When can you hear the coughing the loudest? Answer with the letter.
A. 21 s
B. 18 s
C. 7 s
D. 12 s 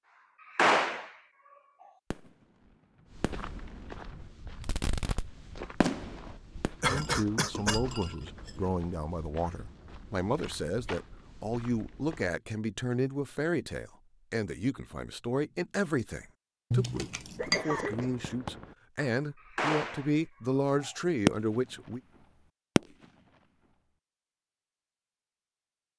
C.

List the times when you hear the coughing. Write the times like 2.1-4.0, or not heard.
6.8-7.8, 17.4-18.1.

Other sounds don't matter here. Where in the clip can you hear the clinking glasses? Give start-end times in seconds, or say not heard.
7.0-8.7, 16.7-17.6.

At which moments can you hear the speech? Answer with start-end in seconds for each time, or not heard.
6.8-22.0.